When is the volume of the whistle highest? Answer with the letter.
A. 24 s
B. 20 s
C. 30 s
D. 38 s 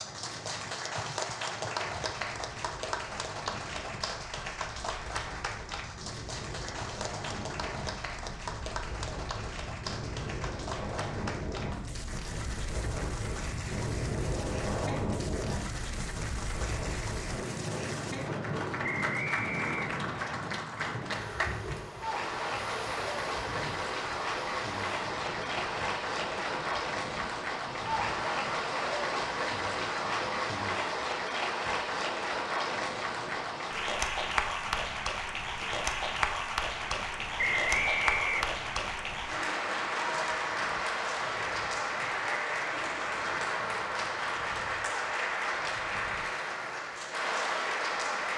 D.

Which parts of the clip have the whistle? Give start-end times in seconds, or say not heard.
18.8-20.4, 37.4-38.5.